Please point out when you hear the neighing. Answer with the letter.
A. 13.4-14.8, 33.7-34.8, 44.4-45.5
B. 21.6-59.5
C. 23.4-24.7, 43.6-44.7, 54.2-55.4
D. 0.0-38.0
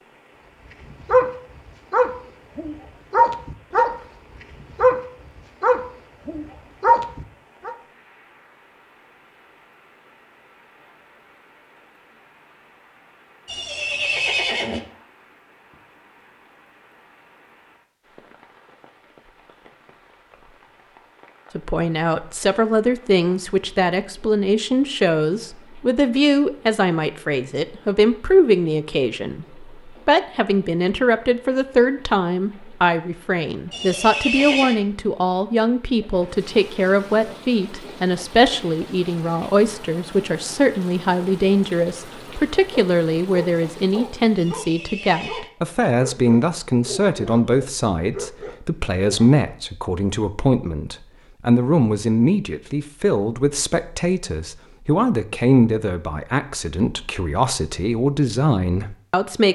A.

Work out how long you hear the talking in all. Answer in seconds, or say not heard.
38 s.